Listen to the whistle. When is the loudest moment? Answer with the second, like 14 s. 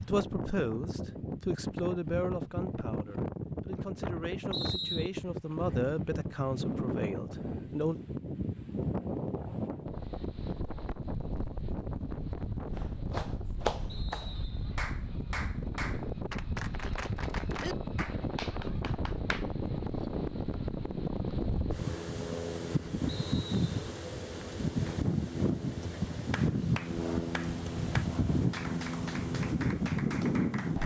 5 s.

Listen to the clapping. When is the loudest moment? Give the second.
14 s.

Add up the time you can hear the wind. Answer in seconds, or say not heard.
31 s.